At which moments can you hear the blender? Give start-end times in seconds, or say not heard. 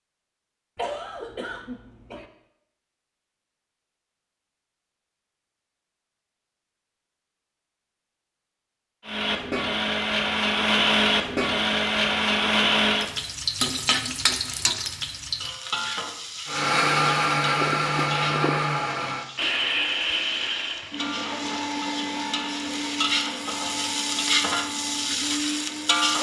9.1-13.1, 16.4-26.1.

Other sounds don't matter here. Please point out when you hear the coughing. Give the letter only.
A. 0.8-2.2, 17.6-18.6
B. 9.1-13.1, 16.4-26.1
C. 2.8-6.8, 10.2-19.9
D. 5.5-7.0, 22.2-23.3
A.